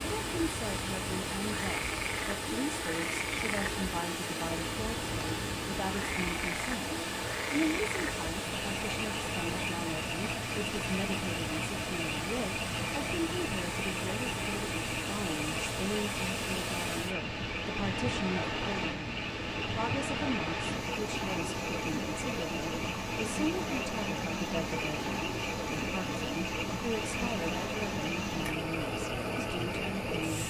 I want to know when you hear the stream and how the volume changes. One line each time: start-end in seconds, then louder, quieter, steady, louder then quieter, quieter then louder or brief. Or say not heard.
0.0-30.4 steady.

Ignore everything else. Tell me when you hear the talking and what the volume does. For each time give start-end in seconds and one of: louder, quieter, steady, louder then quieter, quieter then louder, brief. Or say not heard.
0.0-30.4 steady.